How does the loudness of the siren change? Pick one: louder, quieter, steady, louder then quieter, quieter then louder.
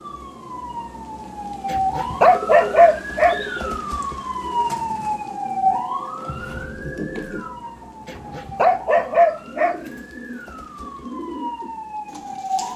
quieter.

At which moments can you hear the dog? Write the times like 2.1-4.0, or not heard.
1.6-3.4, 8.1-9.8.